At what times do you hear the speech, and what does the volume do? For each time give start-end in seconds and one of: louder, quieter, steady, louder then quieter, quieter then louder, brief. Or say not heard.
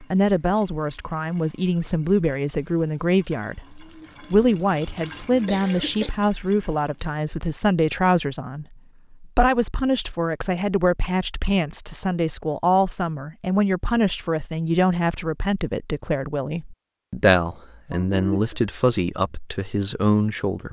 0.0-20.6 steady.